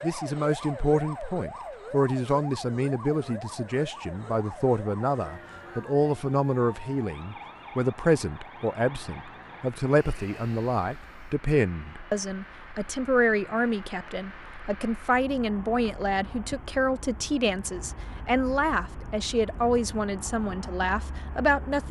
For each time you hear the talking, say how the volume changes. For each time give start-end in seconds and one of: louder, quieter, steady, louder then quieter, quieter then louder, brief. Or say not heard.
0.0-21.8 steady.